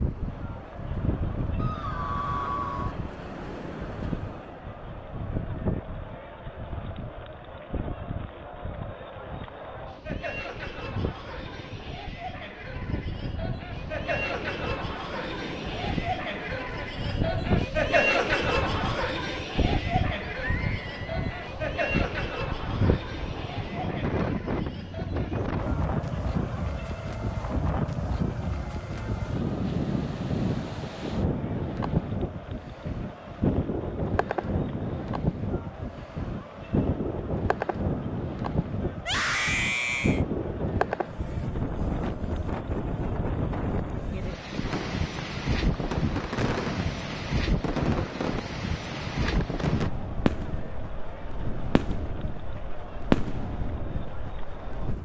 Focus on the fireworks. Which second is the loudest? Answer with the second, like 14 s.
53 s.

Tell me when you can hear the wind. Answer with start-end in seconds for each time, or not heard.
0.0-54.9.